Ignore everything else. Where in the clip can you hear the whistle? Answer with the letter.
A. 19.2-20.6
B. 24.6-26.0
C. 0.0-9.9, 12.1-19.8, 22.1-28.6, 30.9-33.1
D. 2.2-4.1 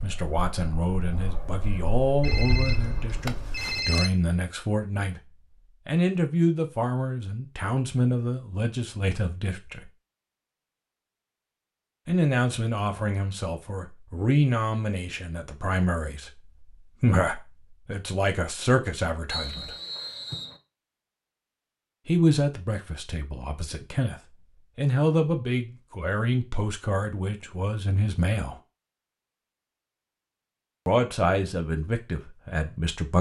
A.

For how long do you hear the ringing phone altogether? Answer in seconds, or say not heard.
2 s.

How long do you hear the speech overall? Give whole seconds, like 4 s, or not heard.
26 s.